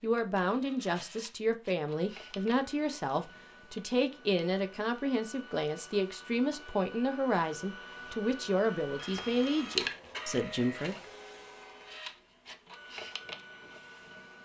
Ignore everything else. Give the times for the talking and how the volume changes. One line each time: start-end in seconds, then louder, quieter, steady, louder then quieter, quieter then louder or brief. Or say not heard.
0.0-10.9 steady.